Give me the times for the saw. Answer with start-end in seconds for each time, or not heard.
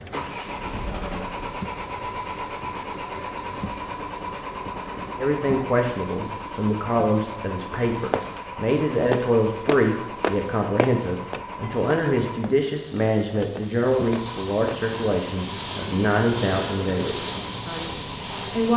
not heard.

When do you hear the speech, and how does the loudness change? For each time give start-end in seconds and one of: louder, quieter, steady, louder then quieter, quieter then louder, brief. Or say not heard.
5.2-18.7 steady.